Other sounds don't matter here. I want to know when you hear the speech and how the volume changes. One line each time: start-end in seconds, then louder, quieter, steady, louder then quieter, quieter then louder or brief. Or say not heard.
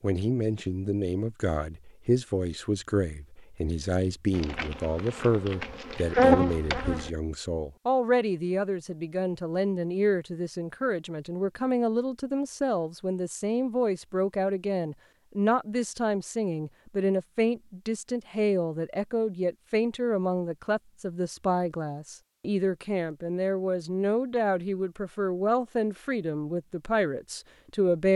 0.0-28.1 steady.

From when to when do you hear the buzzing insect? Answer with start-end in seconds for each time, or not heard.
4.3-7.1.